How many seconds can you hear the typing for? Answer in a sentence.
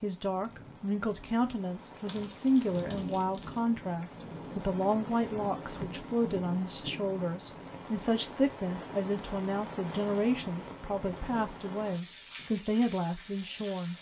You can't hear the typing here.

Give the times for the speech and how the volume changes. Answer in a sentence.
You can hear the speech from 0.0 to 13.9 s, at a steady volume.